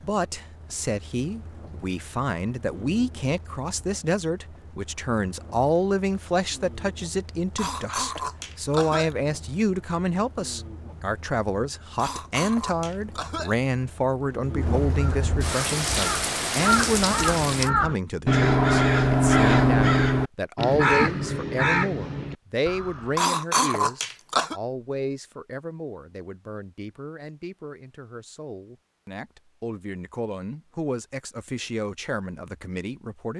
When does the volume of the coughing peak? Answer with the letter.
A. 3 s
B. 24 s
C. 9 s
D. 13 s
B.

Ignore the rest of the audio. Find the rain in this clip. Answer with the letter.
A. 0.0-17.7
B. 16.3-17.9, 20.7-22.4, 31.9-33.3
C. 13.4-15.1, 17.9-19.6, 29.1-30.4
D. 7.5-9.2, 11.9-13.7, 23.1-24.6
A.